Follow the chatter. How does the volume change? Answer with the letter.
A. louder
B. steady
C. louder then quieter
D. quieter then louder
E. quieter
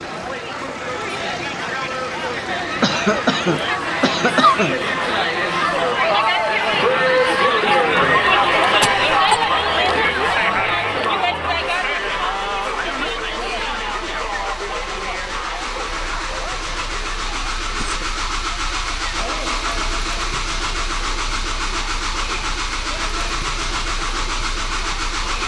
C.